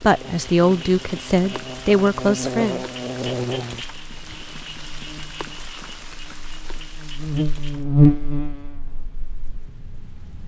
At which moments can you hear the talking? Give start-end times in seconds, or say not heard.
0.0-2.9.